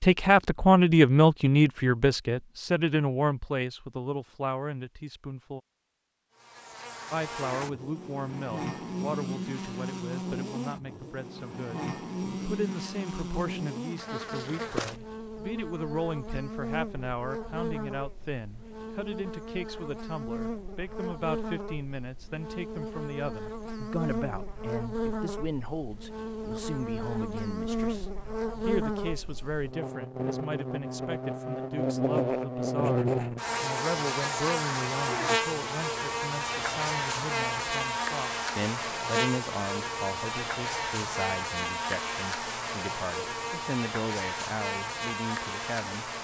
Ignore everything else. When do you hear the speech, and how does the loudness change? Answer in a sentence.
You can hear the speech from 0.0 to 5.6 s, getting quieter; and from 7.1 to 46.2 s, at a steady volume.